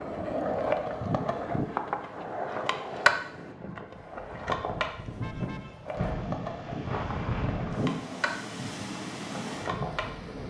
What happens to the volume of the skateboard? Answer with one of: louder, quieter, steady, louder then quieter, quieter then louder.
quieter.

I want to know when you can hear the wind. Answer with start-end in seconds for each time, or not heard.
0.0-10.4.